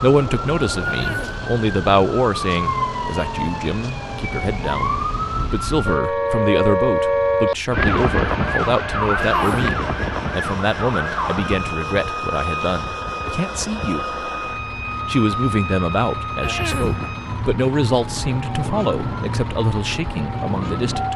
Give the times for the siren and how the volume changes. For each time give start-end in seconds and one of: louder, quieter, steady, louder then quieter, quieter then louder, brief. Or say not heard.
0.2-21.1 louder then quieter.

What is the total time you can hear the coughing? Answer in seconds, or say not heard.
2 s.